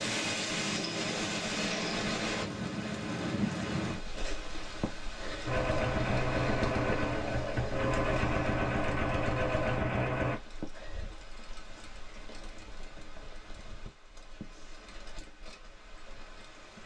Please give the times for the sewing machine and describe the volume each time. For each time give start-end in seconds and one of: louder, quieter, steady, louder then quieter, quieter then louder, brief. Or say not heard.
5.5-10.4 steady.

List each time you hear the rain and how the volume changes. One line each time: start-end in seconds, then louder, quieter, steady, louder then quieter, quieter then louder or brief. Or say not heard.
0.0-16.8 quieter.